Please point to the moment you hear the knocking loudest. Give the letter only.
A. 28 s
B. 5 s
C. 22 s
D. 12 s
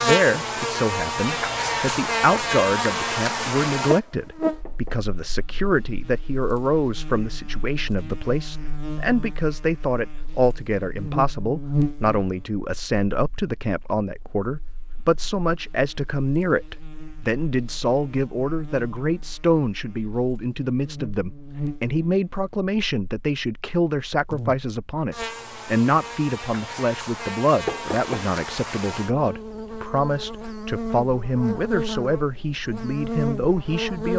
A.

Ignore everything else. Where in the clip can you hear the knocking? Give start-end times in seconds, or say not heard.
4.4-5.0, 27.6-28.2.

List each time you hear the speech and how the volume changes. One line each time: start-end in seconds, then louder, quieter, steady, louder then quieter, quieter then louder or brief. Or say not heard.
0.0-34.1 steady.